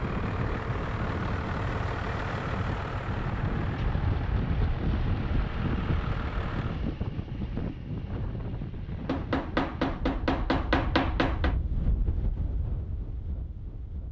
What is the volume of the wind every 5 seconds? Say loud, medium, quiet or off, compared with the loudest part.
loud, loud, medium.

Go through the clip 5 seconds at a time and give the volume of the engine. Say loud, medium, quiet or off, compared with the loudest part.
loud, loud, off.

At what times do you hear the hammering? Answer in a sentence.
The hammering can be heard from 9.1 to 11.6 s.